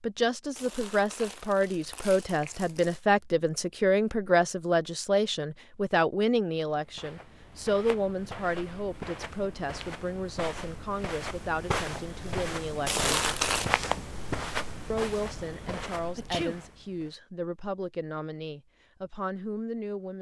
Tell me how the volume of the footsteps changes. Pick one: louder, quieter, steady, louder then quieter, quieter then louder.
louder then quieter.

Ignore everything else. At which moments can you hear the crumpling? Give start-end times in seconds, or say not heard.
0.6-3.0, 12.8-13.8.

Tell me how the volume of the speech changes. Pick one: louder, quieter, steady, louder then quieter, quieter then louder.
quieter.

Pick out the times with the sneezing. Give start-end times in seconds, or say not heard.
16.1-16.6.